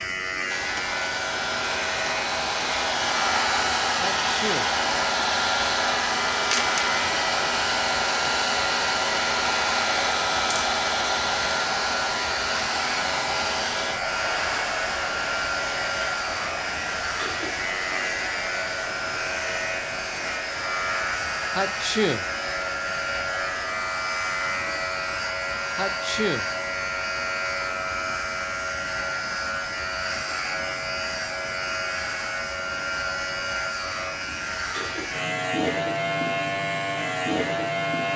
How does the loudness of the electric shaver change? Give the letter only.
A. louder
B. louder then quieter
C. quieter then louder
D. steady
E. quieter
D.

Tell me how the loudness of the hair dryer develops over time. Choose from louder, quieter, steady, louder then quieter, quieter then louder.
quieter.